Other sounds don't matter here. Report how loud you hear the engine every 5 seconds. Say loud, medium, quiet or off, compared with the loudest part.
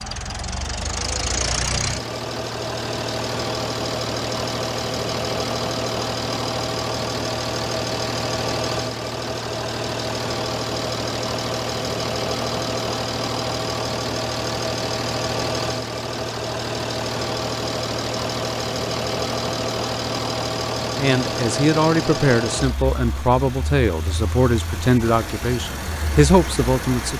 loud, loud, loud, loud, loud, medium.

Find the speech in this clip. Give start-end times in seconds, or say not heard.
20.9-27.1.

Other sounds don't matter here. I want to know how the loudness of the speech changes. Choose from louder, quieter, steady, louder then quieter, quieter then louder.
steady.